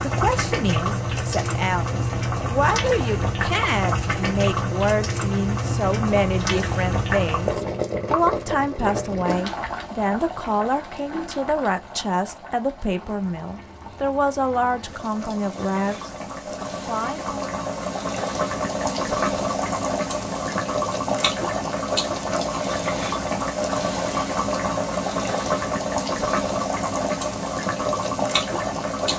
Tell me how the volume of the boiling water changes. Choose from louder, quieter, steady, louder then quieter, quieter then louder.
quieter then louder.